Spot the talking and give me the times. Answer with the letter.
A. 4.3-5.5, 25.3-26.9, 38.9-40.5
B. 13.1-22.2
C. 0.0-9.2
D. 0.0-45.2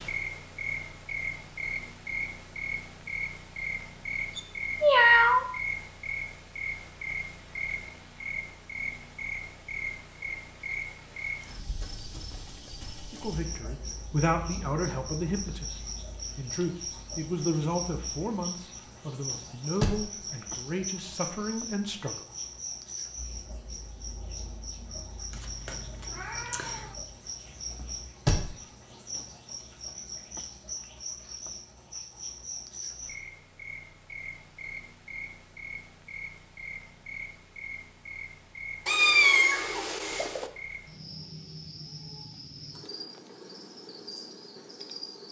B.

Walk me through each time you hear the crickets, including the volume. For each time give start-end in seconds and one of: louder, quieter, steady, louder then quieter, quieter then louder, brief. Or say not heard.
0.0-45.2 quieter.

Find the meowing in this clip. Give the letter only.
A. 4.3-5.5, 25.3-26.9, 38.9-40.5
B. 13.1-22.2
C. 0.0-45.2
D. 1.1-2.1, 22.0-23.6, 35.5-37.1
A.